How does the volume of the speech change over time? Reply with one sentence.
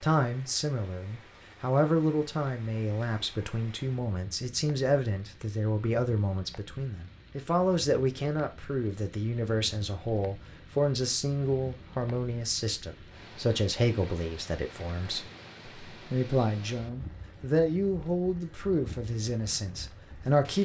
The loudness of the speech stays about the same.